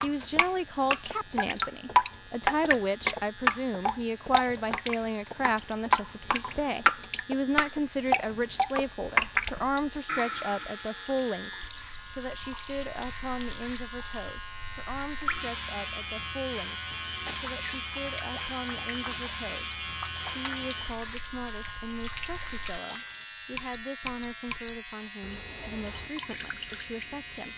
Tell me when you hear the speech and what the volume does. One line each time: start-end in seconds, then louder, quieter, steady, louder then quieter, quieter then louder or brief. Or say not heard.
0.0-27.5 quieter.